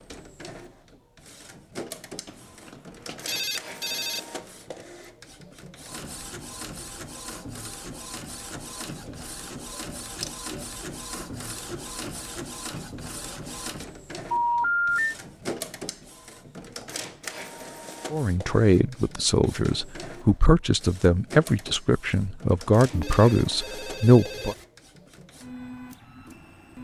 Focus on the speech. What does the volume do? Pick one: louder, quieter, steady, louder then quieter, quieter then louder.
steady.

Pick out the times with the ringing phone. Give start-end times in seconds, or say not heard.
2.2-4.2, 14.3-15.2, 22.9-24.6.